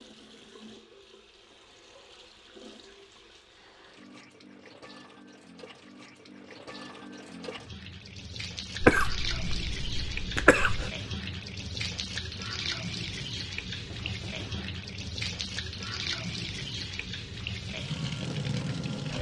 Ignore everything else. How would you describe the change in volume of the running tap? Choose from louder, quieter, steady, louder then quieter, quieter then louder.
louder.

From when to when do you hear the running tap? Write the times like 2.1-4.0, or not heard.
0.0-19.1.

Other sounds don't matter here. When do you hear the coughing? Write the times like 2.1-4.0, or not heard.
8.8-10.9.